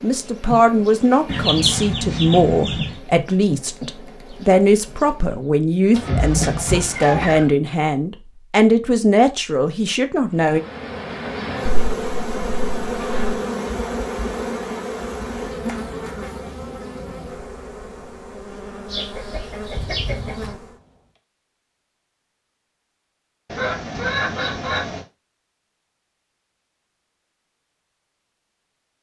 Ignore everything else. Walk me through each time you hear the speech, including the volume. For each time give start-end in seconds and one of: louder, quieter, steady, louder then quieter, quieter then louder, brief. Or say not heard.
0.0-10.6 steady.